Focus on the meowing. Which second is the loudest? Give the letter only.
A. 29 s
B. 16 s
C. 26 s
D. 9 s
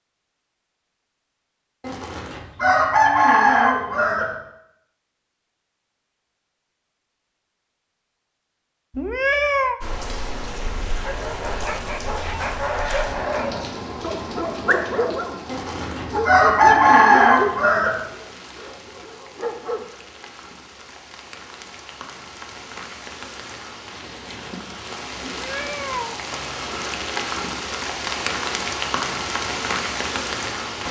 D.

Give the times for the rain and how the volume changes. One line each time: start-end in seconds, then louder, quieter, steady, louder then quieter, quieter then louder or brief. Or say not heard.
9.8-30.8 quieter then louder.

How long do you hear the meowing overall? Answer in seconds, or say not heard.
2 s.